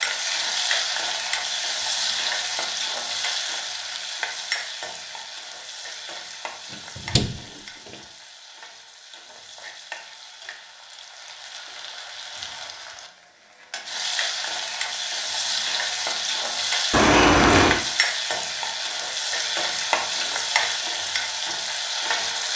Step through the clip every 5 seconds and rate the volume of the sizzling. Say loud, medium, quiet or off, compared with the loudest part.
loud, quiet, medium, loud, loud.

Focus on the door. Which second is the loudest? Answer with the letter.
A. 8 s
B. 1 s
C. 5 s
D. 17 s
D.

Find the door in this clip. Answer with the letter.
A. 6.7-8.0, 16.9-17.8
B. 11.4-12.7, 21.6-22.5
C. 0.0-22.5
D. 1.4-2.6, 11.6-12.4
A.